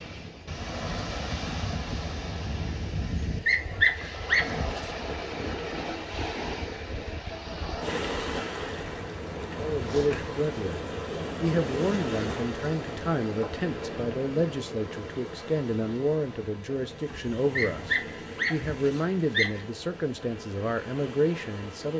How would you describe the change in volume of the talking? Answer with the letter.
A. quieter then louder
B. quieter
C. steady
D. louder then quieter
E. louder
C.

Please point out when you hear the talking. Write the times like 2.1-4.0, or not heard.
9.6-21.9.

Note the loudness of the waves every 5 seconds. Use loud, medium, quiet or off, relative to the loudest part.
loud, loud, loud, medium, medium.